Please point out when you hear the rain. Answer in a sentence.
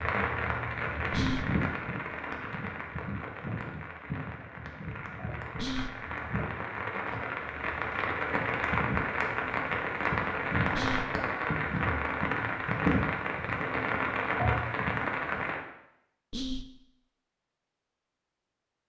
You can hear the rain from 0.0 to 15.6 s.